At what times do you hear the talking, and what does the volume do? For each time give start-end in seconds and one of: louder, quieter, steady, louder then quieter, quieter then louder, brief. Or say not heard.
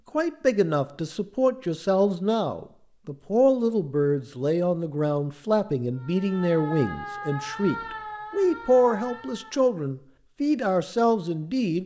0.1-11.8 steady.